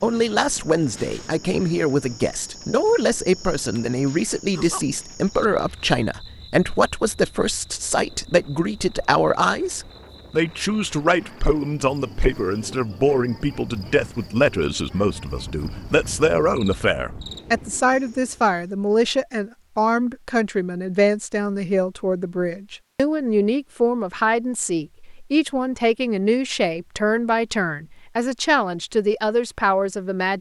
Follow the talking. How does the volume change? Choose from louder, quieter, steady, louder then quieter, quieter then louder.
steady.